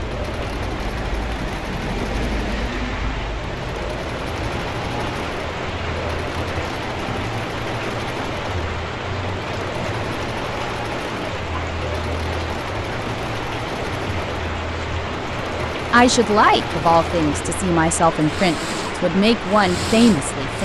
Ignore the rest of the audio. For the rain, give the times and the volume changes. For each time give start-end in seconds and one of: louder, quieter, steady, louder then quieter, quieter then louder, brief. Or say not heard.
0.0-20.5 steady.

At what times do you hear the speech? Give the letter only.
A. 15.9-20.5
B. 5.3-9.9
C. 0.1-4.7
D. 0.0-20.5
A.